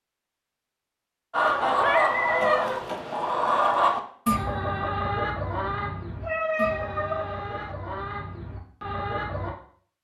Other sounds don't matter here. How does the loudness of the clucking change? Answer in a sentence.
The loudness of the clucking goes down.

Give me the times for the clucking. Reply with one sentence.
You can hear the clucking from 1.3 to 9.6 s.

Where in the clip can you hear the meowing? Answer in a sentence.
You can hear the meowing from 1.5 to 2.6 s and from 6.2 to 7.8 s.